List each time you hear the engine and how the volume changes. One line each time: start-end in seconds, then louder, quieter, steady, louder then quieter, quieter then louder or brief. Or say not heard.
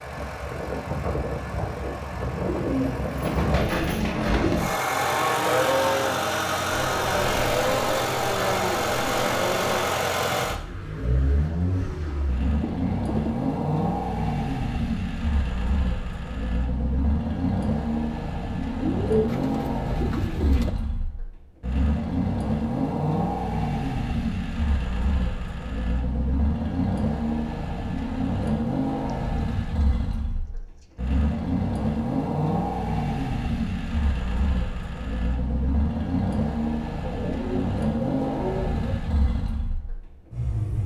0.0-40.8 steady.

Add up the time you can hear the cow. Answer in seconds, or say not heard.
6 s.